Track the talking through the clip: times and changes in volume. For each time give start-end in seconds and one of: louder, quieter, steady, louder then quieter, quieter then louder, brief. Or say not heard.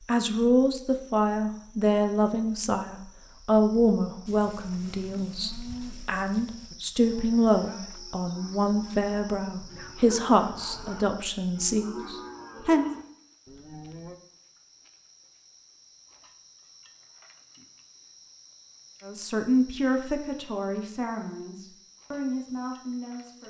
0.1-12.9 steady
19.1-23.4 quieter.